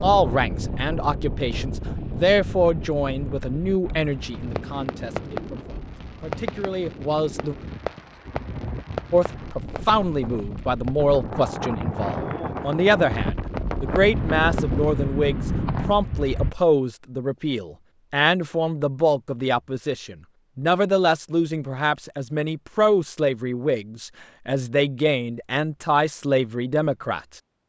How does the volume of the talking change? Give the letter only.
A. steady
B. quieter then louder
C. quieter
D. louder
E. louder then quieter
A.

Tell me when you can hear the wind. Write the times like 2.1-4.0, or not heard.
0.0-16.6.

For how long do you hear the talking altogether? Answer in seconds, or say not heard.
26 s.